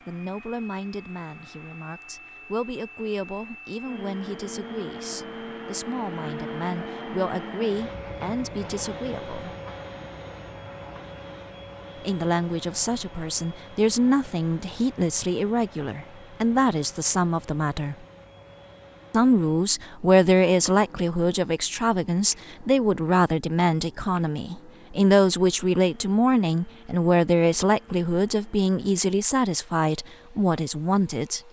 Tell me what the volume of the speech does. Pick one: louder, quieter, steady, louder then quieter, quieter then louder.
louder.